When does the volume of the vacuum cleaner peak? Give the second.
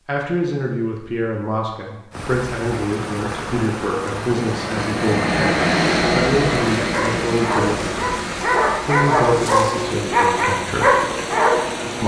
6 s.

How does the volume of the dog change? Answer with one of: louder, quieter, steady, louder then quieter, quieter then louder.
louder.